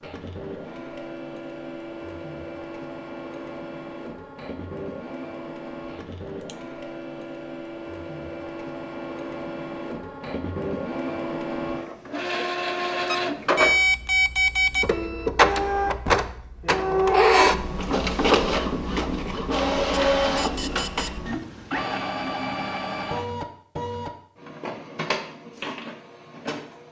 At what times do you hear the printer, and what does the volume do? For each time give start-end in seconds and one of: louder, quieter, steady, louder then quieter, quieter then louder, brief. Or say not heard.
0.0-26.8 louder then quieter.